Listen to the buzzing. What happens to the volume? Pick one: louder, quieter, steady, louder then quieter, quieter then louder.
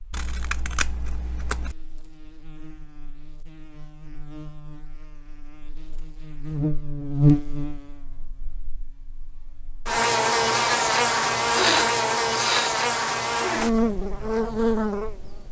louder.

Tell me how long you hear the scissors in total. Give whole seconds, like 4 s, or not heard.
2 s.